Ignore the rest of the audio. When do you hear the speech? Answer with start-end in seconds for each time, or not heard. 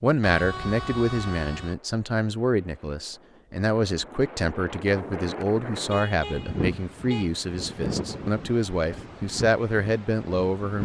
0.0-10.8.